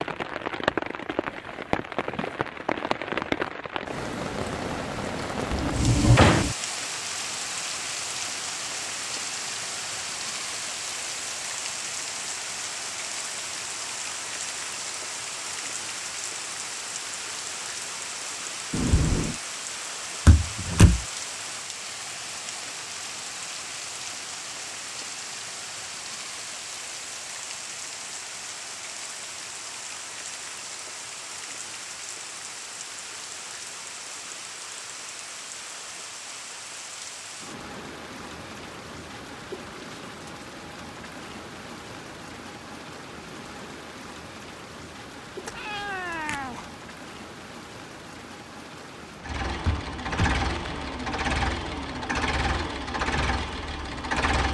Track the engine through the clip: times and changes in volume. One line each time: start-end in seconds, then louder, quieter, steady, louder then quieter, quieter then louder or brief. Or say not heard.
49.2-54.4 steady.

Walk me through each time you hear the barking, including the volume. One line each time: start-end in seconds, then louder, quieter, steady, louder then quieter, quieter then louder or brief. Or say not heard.
not heard.